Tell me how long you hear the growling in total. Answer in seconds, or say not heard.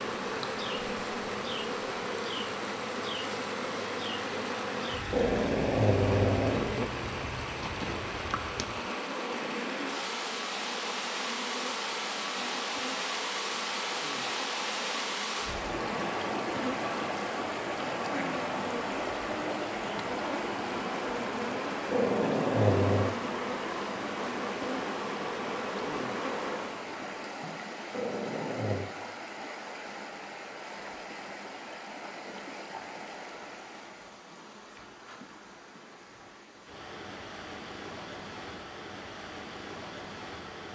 4 s.